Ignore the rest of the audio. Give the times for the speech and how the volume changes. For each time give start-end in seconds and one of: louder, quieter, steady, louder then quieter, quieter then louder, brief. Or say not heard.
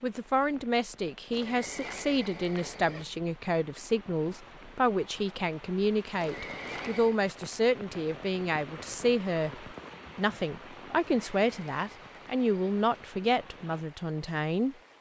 0.0-14.8 steady.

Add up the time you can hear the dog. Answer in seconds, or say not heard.
not heard.